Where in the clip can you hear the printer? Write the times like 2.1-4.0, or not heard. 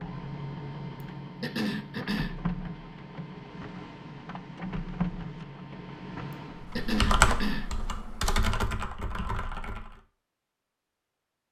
0.0-6.8.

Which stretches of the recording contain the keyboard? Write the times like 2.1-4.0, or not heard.
6.6-10.0.